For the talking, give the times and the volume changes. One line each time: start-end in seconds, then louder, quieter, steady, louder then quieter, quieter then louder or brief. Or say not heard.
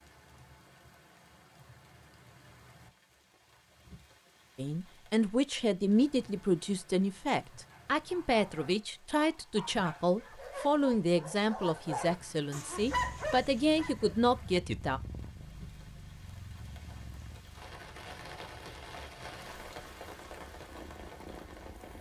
4.5-15.0 steady.